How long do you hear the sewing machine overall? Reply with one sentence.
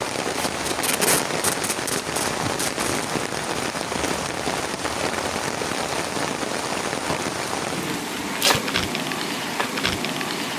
You can't hear the sewing machine here.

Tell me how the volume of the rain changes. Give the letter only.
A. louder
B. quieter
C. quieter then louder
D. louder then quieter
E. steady
E.